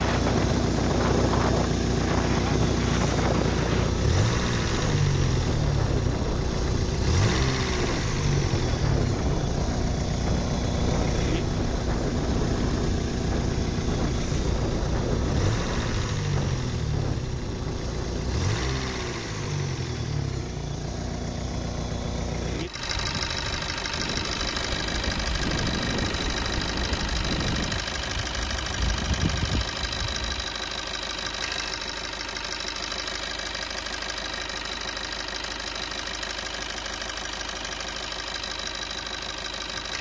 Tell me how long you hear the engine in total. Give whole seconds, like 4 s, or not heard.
40 s.